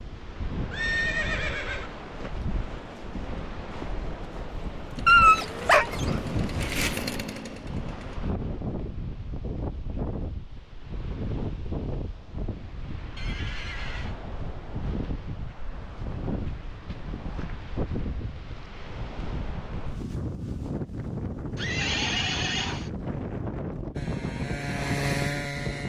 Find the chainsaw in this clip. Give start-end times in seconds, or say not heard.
5.0-8.2, 23.9-25.8.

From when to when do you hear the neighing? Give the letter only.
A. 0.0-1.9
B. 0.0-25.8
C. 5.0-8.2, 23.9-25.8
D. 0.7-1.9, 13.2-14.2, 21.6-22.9
D.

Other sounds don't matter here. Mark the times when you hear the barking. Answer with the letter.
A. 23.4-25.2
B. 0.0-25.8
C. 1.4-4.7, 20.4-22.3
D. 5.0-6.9
D.